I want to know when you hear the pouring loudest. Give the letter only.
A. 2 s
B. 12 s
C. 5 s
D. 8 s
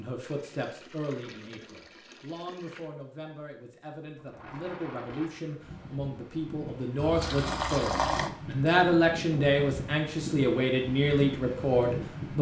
D.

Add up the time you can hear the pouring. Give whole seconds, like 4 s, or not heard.
4 s.